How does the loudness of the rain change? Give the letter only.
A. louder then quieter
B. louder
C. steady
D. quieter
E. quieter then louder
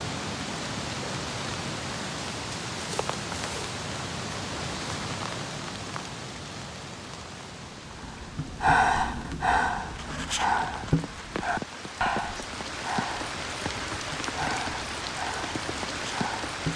E.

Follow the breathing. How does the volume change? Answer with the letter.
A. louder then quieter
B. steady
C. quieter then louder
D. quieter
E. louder
D.